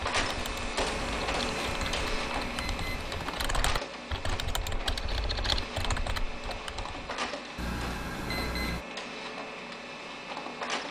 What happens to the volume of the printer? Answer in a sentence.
The loudness of the printer goes down.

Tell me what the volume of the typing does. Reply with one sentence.
The loudness of the typing goes up.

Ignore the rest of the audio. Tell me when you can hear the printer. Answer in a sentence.
You can hear the printer from 0.0 to 10.8 s.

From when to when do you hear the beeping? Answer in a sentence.
The beeping can be heard from 0.8 to 3.5 s and from 7.5 to 8.8 s.